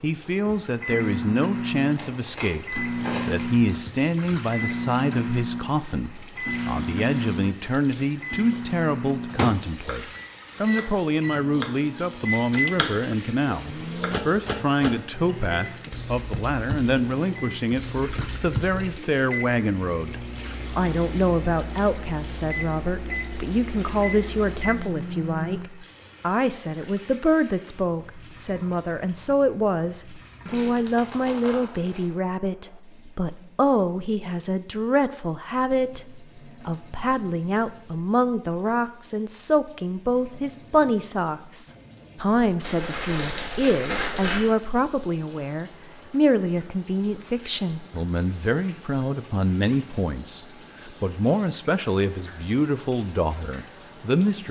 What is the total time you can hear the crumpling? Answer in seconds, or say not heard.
5 s.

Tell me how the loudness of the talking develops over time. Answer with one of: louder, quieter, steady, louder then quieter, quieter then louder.
steady.